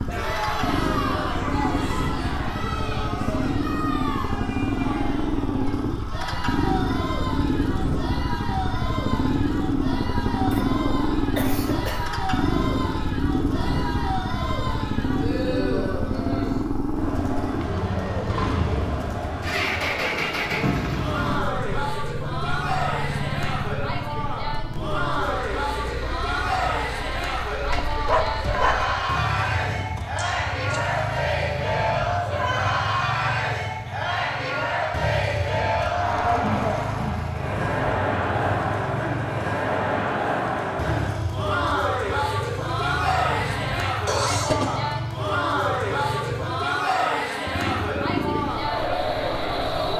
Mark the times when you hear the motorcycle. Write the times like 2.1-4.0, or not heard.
0.0-49.9.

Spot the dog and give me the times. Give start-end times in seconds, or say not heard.
27.6-28.9.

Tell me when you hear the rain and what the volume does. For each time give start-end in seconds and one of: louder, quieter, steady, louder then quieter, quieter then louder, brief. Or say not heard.
not heard.